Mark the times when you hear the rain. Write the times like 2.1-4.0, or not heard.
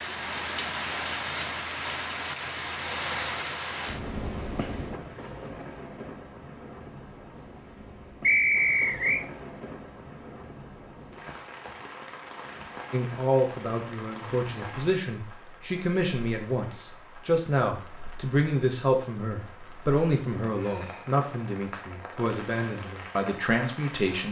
0.0-24.2.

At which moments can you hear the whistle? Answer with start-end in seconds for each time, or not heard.
8.2-9.2.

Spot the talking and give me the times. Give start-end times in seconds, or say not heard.
12.9-24.2.